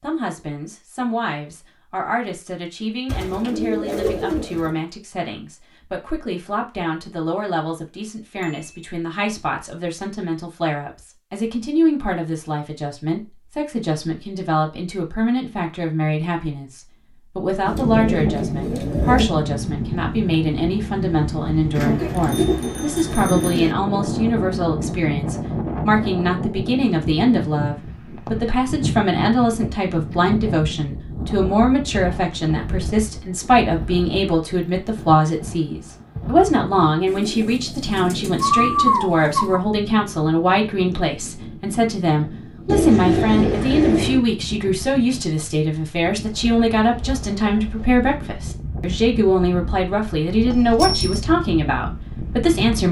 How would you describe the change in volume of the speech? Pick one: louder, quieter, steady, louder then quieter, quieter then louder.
louder.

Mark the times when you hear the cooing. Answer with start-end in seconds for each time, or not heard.
3.0-4.8, 17.6-19.3, 21.8-23.8, 37.0-39.6, 42.6-44.2.